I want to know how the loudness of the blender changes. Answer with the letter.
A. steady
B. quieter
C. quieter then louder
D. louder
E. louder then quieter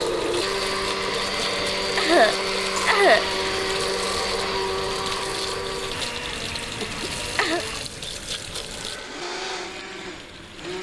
B.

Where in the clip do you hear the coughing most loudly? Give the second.
3 s.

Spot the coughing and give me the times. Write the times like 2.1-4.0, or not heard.
1.4-3.3, 6.8-7.6.